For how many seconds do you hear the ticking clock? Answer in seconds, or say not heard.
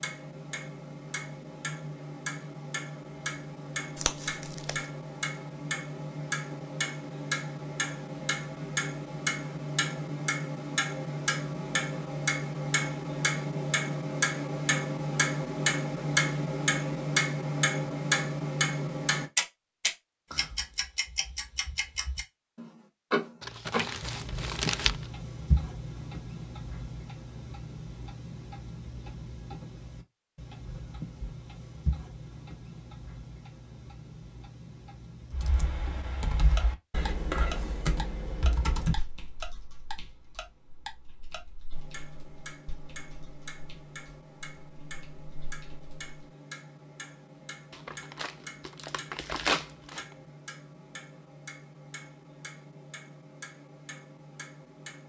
55 s.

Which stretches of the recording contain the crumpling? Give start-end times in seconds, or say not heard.
4.0-4.8, 23.4-25.1, 47.7-50.1.